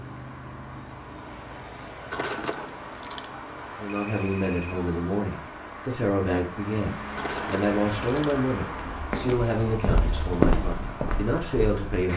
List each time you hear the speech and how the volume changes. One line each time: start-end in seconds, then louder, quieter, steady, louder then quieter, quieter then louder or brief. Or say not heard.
3.8-12.1 steady.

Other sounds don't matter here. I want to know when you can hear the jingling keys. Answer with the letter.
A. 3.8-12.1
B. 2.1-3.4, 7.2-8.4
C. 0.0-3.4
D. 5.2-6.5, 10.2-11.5
B.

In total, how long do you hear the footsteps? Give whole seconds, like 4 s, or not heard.
3 s.